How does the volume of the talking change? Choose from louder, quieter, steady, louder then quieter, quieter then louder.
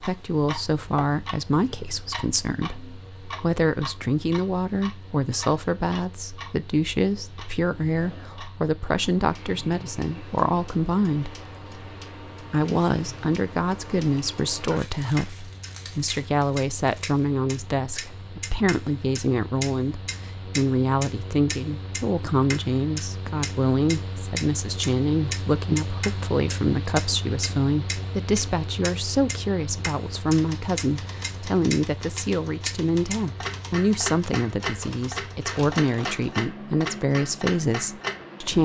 steady.